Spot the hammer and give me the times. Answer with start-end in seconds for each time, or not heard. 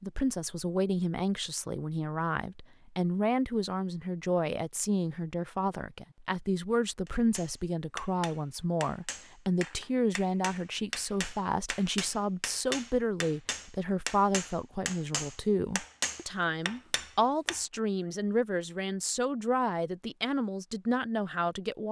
7.0-17.6.